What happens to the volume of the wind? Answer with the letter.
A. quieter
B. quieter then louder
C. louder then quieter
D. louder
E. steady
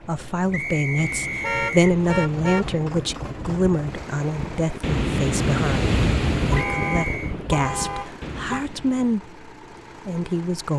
C.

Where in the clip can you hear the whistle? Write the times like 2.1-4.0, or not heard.
0.5-1.9, 6.5-7.3.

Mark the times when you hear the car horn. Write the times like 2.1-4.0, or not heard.
1.4-2.7, 6.5-8.7.